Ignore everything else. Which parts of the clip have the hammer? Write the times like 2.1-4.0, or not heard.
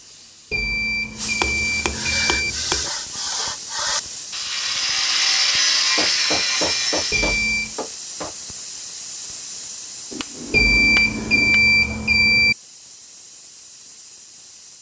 1.4-2.9, 6.0-8.3, 10.1-11.6.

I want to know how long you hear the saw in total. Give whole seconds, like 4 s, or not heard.
6 s.